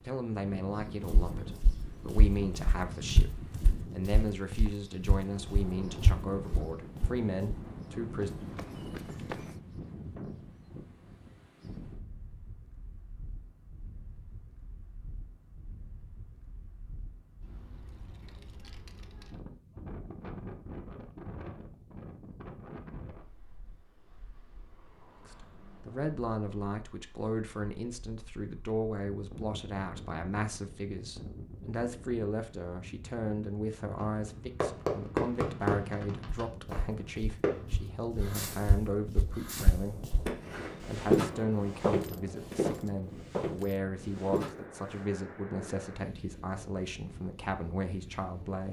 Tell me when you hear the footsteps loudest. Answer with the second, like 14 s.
41 s.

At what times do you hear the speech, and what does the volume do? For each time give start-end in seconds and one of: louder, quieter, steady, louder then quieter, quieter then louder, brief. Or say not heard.
0.0-8.3 steady
25.2-40.1 steady
40.9-48.6 steady.